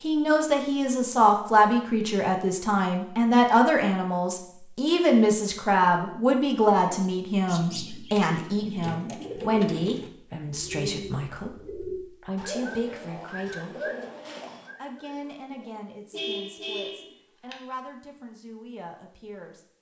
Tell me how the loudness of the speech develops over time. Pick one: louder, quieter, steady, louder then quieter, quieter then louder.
quieter.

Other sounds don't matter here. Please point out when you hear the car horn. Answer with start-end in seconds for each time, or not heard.
16.1-17.6.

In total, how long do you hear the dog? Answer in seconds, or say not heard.
not heard.